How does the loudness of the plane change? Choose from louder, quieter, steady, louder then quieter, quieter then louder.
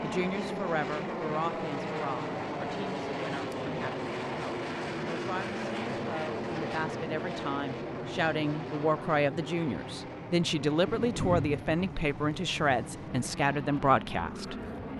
quieter.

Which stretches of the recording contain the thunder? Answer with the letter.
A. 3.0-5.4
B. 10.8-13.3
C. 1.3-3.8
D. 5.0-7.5
B.